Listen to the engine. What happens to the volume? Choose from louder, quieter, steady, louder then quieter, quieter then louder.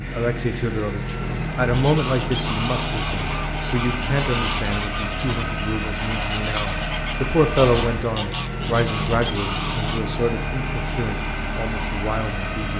steady.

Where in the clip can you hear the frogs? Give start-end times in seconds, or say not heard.
not heard.